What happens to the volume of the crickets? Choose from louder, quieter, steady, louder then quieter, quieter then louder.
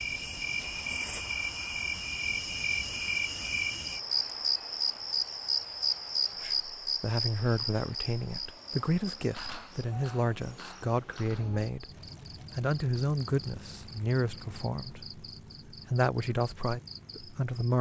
quieter.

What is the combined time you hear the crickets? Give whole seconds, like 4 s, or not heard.
18 s.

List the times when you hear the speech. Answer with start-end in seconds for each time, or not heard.
6.4-11.9, 12.6-17.7.